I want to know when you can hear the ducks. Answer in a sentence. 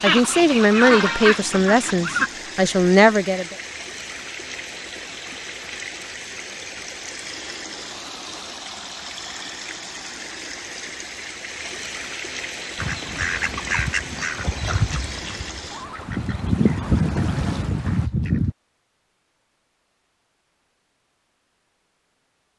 The ducks can be heard from 0.0 to 2.3 s and from 12.8 to 18.6 s.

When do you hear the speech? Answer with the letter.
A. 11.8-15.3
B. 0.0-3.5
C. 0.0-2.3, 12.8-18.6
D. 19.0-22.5
B.